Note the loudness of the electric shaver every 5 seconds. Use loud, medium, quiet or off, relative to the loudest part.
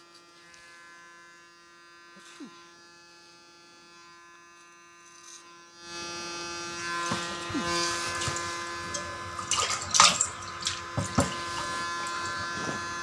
quiet, loud, loud.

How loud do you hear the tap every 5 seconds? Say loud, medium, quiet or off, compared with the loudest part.
off, loud, loud.